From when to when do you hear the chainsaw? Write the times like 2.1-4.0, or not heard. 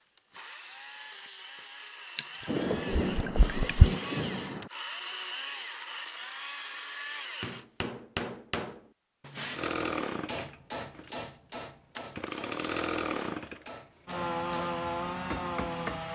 0.0-7.9, 9.6-16.0.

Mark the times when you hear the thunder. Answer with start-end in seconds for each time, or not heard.
2.5-4.7.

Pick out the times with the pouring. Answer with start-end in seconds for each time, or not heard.
2.1-4.0.